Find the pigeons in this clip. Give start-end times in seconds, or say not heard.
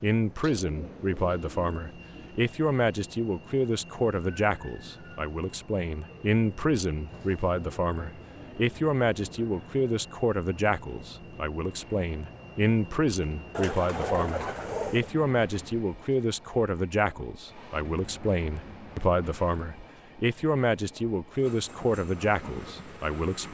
0.4-2.5, 13.5-15.1.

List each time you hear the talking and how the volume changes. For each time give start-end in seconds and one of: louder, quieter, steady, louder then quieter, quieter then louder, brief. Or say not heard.
0.0-23.4 steady.